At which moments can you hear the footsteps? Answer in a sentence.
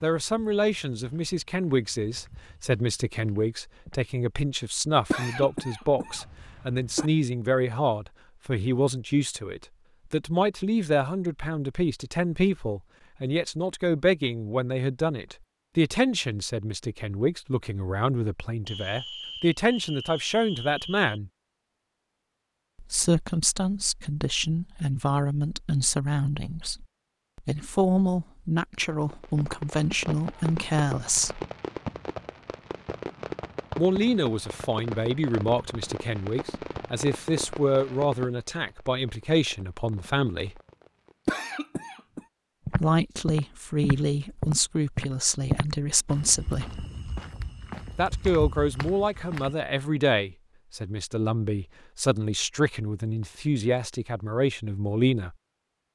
The footsteps can be heard from 0.2 to 4.0 s and from 42.6 to 49.5 s.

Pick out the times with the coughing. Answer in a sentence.
The coughing can be heard from 5.1 to 7.1 s and from 41.2 to 42.2 s.